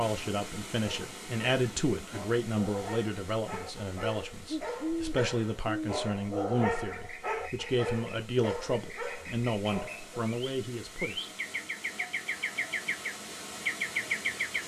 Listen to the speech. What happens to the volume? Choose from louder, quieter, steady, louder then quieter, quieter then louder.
steady.